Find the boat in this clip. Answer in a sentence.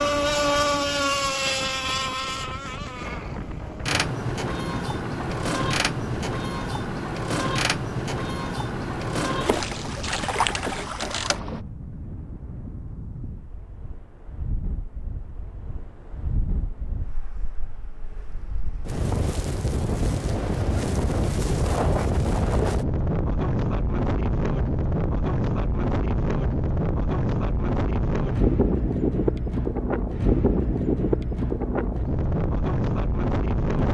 You can hear the boat from 0.0 to 11.7 s.